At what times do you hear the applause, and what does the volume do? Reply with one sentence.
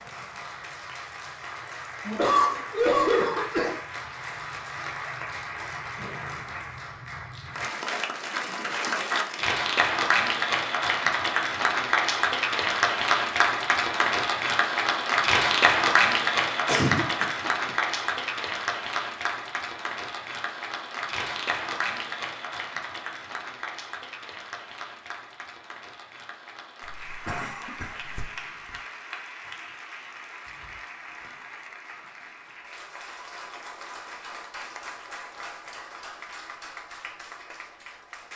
The applause can be heard from 0.0 to 38.3 s, getting louder then quieter.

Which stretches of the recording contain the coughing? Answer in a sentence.
You can hear the coughing from 2.0 to 3.8 s, from 16.6 to 17.2 s and from 26.9 to 28.8 s.